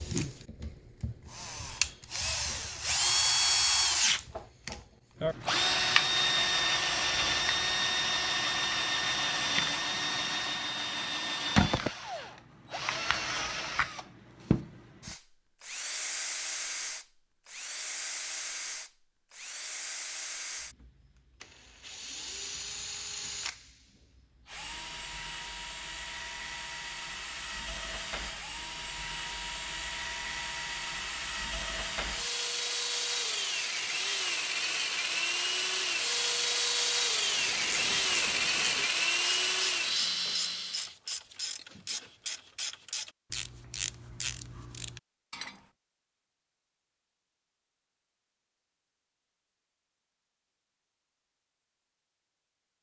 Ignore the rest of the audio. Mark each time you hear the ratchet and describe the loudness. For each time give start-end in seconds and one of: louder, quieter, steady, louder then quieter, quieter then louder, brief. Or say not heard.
37.2-45.6 steady.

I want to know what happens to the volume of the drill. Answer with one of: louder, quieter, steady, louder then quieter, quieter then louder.
quieter then louder.